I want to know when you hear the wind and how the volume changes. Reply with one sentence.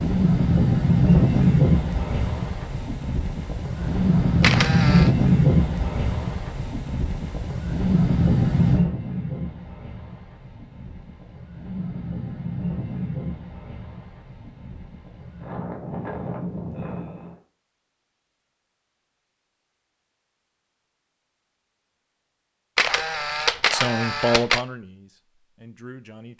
You can hear the wind from 0.0 to 17.4 s, getting quieter.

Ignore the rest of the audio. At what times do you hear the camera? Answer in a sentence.
The camera can be heard from 3.8 to 5.1 s and from 22.8 to 24.6 s.